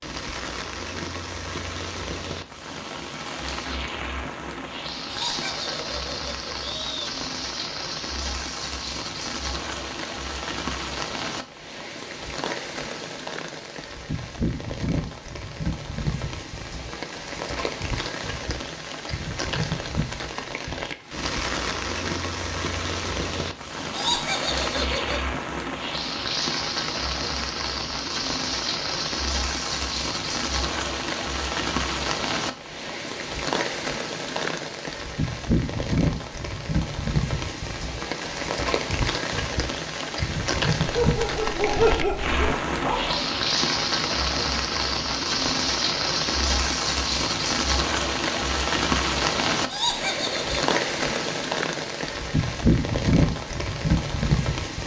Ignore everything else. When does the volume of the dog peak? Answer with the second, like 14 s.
42 s.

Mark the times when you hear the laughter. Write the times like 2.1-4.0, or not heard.
5.0-7.0, 23.9-25.2, 49.6-50.6.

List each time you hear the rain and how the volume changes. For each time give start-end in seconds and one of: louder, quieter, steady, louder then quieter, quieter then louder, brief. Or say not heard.
0.0-54.8 louder.